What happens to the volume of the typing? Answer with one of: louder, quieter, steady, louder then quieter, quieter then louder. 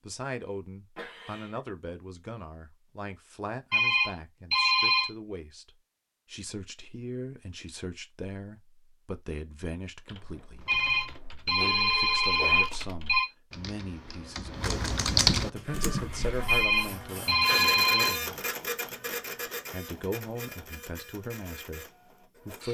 louder.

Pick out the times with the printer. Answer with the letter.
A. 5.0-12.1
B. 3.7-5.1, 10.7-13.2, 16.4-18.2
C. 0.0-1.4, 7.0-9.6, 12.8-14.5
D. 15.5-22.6
D.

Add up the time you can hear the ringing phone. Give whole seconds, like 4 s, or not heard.
6 s.